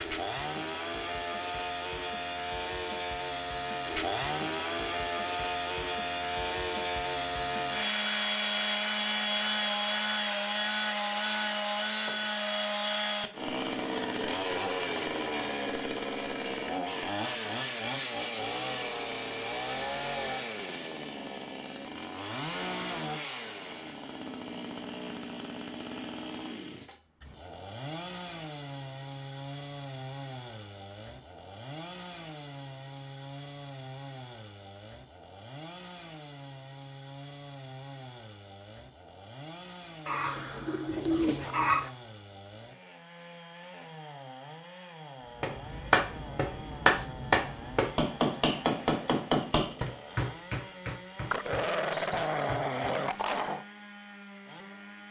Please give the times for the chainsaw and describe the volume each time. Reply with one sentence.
The chainsaw can be heard from 0.0 to 55.0 s, getting quieter.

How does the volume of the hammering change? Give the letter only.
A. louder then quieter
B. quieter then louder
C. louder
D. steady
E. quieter
E.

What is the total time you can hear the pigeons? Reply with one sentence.
The pigeons can be heard for 2 seconds in total.